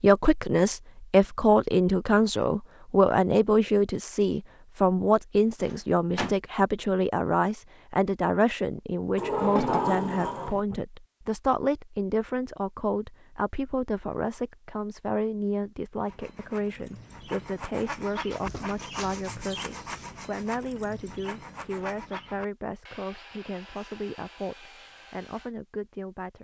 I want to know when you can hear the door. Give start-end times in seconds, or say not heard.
5.6-6.3, 9.2-10.6, 18.3-19.3.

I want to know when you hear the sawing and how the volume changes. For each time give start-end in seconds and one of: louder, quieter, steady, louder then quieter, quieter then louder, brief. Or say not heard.
16.1-25.5 quieter.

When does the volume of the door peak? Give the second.
10 s.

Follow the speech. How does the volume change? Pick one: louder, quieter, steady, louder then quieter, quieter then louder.
quieter.